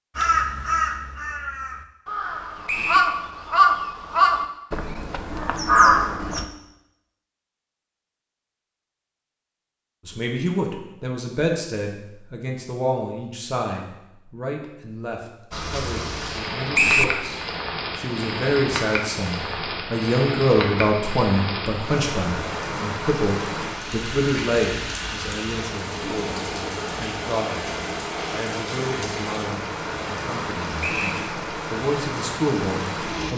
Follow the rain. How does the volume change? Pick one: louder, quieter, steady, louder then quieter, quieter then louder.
steady.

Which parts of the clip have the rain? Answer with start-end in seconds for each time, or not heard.
15.5-33.3.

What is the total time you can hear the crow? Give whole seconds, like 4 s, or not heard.
6 s.